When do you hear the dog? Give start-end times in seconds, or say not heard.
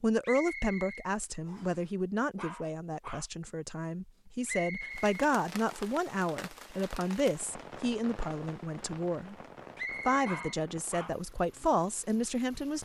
2.4-3.2, 10.2-11.2.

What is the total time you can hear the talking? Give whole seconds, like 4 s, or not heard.
12 s.